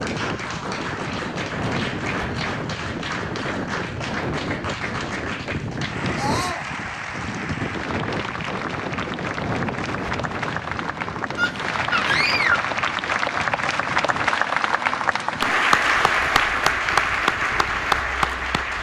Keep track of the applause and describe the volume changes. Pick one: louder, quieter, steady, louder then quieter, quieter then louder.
louder.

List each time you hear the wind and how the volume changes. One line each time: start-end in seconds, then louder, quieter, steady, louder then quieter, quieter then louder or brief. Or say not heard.
0.0-18.7 quieter.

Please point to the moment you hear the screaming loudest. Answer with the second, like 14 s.
12 s.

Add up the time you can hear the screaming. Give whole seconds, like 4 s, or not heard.
2 s.